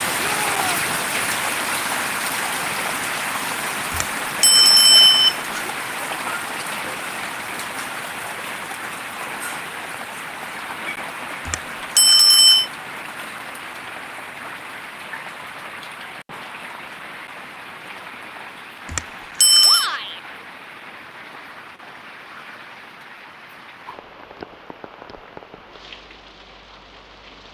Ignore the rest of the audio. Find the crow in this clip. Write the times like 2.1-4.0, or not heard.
not heard.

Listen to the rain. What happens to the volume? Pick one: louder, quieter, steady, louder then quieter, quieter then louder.
quieter.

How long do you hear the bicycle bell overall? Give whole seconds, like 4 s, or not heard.
4 s.